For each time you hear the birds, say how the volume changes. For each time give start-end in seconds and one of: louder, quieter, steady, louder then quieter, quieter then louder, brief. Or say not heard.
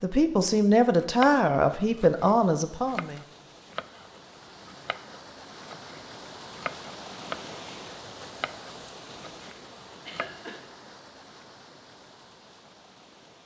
not heard.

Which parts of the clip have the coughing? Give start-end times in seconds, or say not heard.
10.1-10.6.